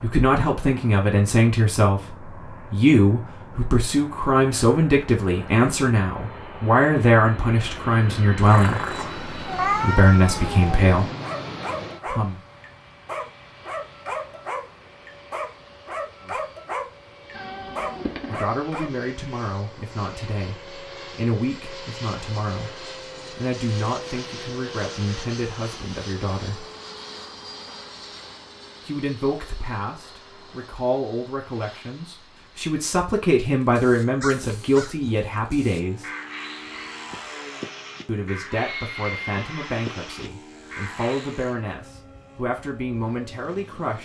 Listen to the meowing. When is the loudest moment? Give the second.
10 s.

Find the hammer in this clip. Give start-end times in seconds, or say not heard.
not heard.